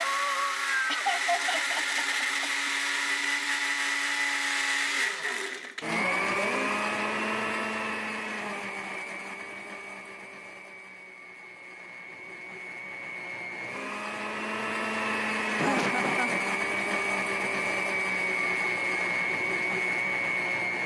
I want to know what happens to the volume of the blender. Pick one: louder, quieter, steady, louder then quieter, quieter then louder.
quieter then louder.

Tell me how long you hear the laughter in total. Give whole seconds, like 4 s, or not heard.
3 s.